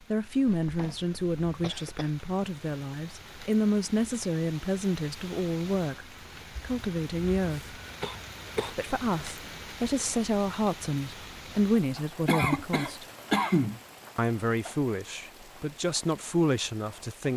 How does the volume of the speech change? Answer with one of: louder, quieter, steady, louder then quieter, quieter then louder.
steady.